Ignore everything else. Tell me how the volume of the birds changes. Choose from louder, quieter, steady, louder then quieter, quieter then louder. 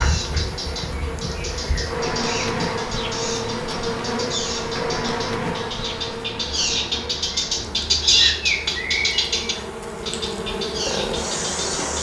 louder then quieter.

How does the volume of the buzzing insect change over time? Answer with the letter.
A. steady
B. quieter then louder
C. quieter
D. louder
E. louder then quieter
B.